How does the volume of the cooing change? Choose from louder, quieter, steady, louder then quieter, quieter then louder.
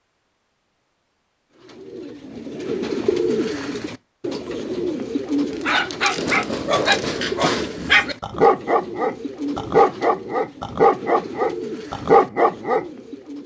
quieter.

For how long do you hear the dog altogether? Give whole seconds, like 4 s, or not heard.
7 s.